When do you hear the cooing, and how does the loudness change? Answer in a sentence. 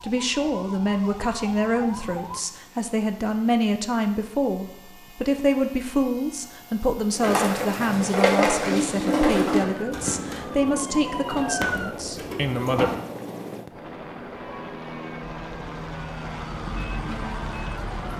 You can hear the cooing from 7.1 to 12.9 s, getting quieter.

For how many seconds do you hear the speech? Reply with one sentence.
You can hear the speech for 13 seconds altogether.